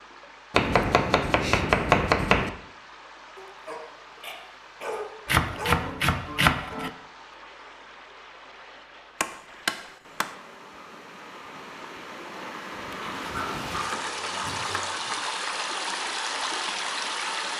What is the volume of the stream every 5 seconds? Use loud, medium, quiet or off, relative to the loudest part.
quiet, quiet, medium, loud.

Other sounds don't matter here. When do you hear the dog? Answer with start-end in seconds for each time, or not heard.
3.4-5.9, 12.9-15.2.